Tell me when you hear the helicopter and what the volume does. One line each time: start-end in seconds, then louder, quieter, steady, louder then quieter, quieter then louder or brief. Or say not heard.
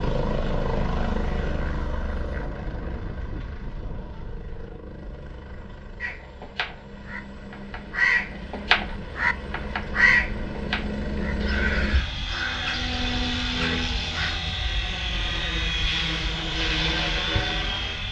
0.0-18.0 quieter then louder.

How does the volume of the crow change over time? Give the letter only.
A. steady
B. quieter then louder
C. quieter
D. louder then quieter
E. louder
D.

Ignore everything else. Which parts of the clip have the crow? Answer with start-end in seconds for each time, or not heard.
6.0-14.4.